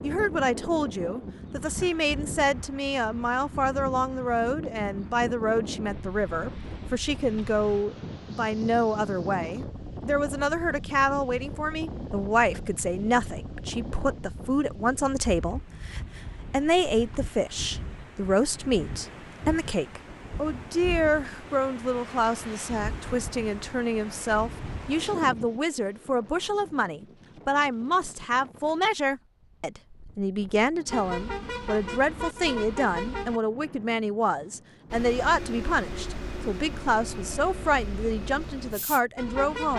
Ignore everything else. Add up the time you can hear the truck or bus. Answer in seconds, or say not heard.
7 s.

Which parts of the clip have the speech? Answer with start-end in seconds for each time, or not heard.
0.0-39.7.